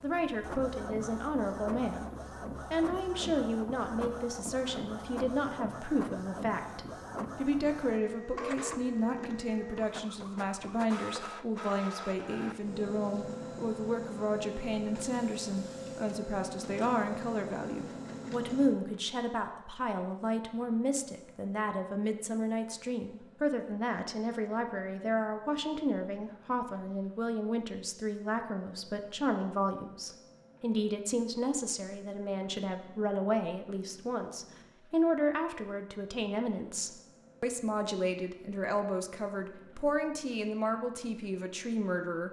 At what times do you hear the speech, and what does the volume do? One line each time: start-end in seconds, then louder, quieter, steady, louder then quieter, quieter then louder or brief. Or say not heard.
0.0-42.2 steady.